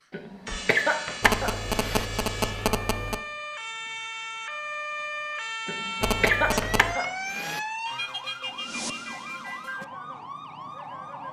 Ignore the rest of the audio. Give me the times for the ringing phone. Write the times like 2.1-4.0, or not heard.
1.2-3.2, 6.0-7.0.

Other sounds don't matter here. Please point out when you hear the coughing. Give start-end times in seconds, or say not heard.
0.1-2.0, 5.7-7.6.